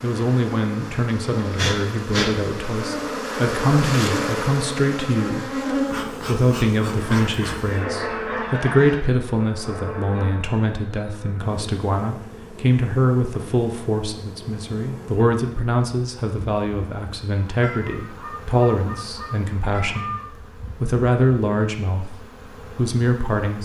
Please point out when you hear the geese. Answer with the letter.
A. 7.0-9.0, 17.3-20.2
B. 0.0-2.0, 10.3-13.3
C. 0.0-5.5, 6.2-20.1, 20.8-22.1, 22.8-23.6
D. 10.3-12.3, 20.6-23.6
A.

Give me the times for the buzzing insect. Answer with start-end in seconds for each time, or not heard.
0.0-23.6.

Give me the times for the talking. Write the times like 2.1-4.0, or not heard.
0.0-5.5, 6.2-20.1, 20.8-22.1, 22.8-23.6.